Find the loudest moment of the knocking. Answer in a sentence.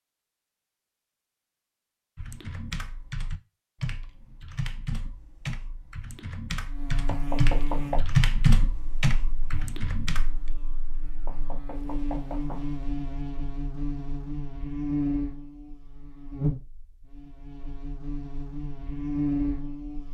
The loudest moment of the knocking is at 8 seconds.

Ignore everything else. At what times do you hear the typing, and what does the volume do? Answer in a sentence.
You can hear the typing from 2.1 to 10.5 s, getting louder then quieter.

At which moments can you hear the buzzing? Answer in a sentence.
The buzzing can be heard from 6.7 to 20.0 s.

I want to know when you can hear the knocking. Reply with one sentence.
The knocking can be heard from 7.0 to 8.0 s and from 11.2 to 12.7 s.